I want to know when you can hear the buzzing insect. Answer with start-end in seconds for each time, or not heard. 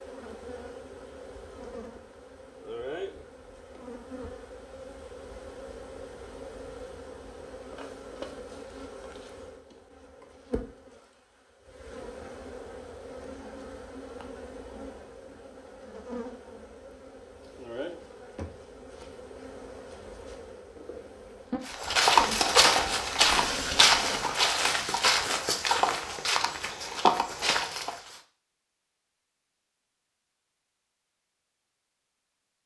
0.0-24.4.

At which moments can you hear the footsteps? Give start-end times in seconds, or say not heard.
21.6-28.2.